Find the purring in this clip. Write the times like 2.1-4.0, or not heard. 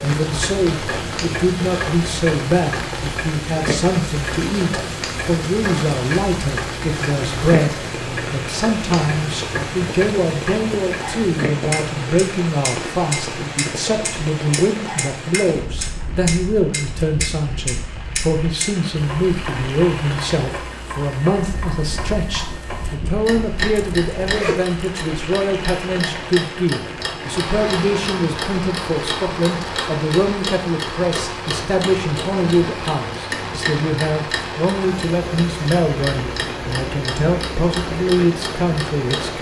not heard.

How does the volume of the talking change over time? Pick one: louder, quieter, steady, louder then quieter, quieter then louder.
steady.